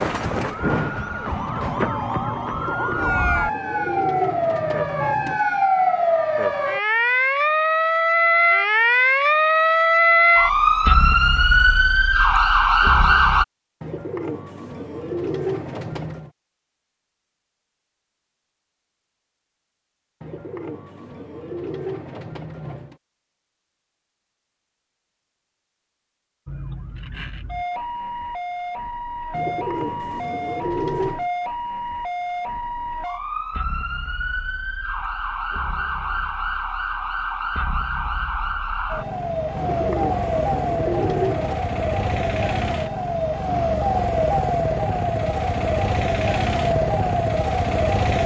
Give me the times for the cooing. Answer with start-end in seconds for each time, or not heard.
2.5-5.5, 13.8-16.3, 20.2-22.9, 29.3-31.3, 39.5-41.6.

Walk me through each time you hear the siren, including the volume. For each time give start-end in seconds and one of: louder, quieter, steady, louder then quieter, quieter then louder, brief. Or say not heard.
0.0-13.4 louder
26.4-48.2 louder.